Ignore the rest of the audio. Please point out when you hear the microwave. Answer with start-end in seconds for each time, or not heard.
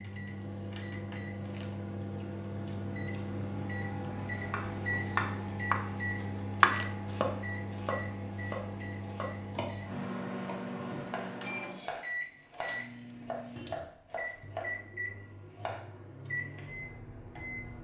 0.0-17.7.